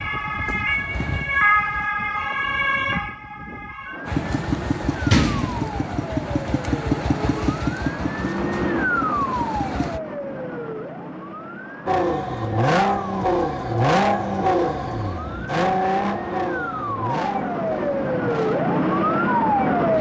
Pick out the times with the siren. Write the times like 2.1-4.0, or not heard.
0.0-19.9.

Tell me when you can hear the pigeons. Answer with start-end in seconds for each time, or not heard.
not heard.